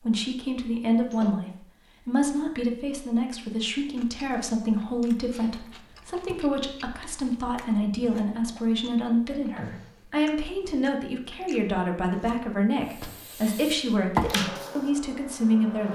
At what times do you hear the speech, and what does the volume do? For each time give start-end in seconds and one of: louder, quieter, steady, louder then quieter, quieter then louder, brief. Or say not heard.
0.0-15.9 steady.